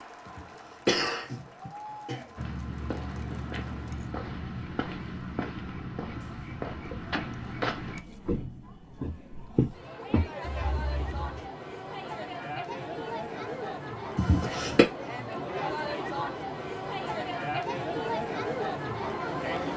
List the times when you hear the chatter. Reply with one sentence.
You can hear the chatter from 0.0 to 19.7 s.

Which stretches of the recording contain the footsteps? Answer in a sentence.
The footsteps can be heard from 2.4 to 11.5 s.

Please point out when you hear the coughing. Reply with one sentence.
You can hear the coughing from 0.2 to 2.2 s and from 14.2 to 14.8 s.